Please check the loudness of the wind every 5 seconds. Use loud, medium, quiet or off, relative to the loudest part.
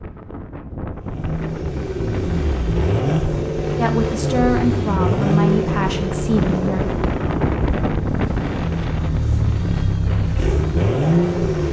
medium, loud, medium.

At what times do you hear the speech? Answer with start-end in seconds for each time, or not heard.
3.8-6.8.